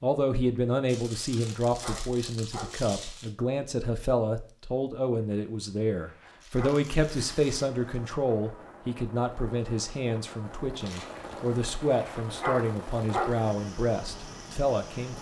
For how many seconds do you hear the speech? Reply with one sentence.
You can hear the speech for 15 seconds altogether.